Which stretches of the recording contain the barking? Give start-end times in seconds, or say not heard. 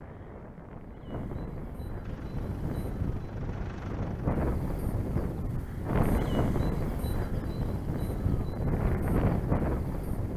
not heard.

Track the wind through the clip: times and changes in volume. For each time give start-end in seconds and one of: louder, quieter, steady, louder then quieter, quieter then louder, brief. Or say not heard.
0.0-10.3 louder.